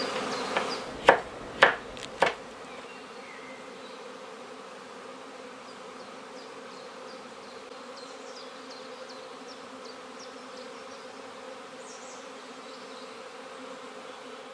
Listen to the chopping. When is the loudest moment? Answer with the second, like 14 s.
2 s.